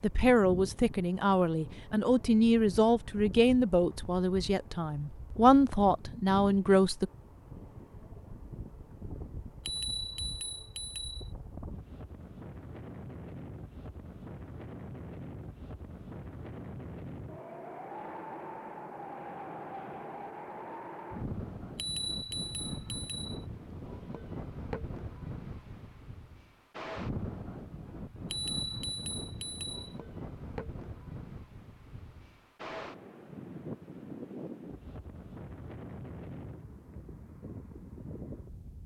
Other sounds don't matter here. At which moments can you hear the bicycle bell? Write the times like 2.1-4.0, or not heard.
9.7-11.2, 21.8-23.4, 28.3-29.9.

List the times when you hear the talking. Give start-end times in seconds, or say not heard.
0.0-7.1.